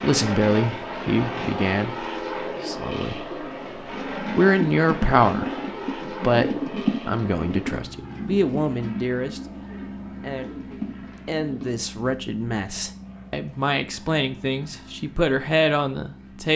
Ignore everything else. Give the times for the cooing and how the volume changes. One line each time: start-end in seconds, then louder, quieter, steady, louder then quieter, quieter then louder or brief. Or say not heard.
2.4-12.2 louder then quieter.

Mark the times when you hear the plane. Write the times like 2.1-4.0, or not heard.
0.0-16.5.